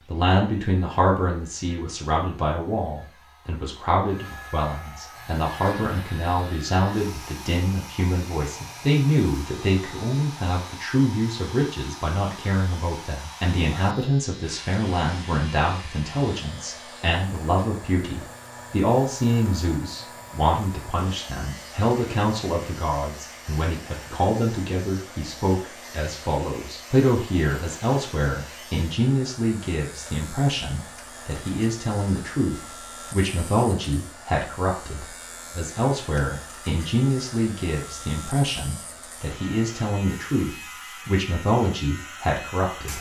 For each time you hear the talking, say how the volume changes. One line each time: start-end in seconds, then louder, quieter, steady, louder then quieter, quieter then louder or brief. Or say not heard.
0.1-42.9 steady.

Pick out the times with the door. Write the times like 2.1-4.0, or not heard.
not heard.